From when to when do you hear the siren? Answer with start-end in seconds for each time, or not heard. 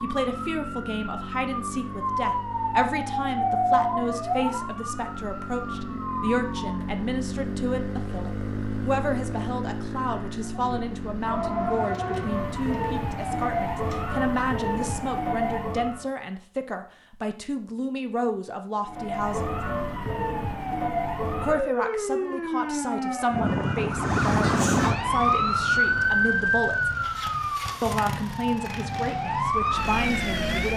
0.0-7.0, 10.4-16.1, 18.8-30.7.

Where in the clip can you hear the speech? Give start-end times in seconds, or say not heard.
0.0-19.6, 21.4-26.9, 27.8-30.7.